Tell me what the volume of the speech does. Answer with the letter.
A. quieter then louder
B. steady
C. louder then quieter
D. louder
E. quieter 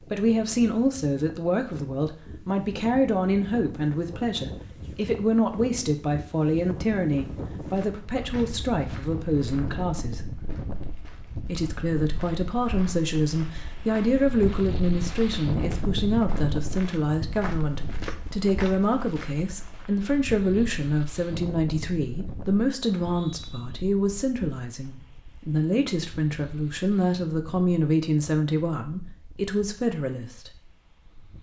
B.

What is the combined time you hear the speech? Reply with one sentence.
The speech can be heard for 29 seconds in total.